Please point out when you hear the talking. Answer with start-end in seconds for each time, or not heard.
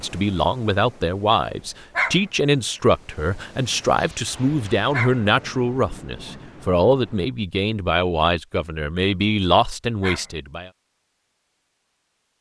0.0-10.7.